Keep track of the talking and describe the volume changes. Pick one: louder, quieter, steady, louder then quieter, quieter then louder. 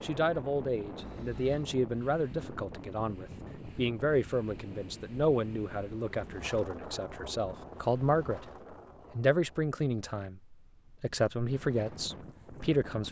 steady.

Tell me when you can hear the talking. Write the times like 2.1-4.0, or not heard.
0.0-8.4, 9.2-13.0.